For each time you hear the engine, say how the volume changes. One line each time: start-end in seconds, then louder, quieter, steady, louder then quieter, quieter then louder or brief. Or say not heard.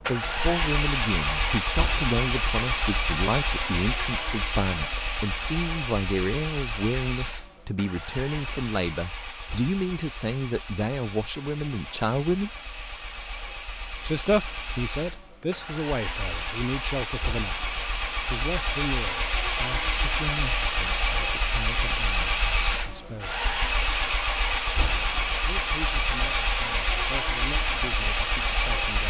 0.0-29.0 quieter then louder.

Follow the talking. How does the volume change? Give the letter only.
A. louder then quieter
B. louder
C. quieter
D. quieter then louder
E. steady
C.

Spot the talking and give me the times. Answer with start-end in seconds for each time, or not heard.
0.1-12.6, 14.0-23.4, 25.4-29.0.